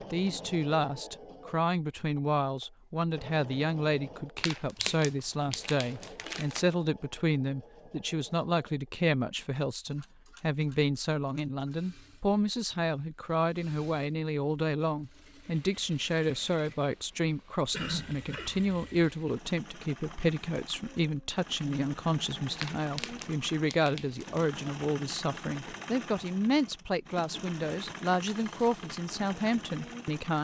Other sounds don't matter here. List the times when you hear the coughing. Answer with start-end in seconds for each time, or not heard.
17.7-18.6.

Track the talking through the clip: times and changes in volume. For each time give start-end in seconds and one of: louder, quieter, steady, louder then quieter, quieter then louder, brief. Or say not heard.
0.1-30.3 steady.